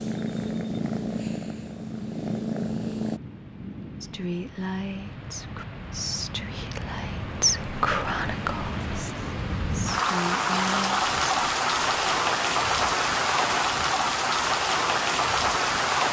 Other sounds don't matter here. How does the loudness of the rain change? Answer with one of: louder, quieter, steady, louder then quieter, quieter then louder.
louder.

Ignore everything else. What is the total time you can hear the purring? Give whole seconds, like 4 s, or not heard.
3 s.